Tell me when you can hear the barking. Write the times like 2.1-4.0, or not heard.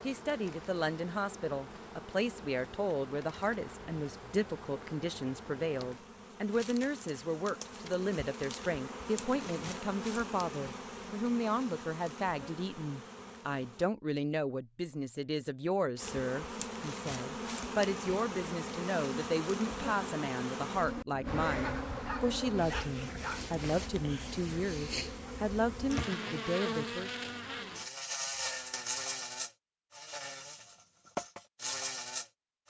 21.6-23.4.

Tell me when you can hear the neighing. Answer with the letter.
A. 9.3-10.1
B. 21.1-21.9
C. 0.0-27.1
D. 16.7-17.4
B.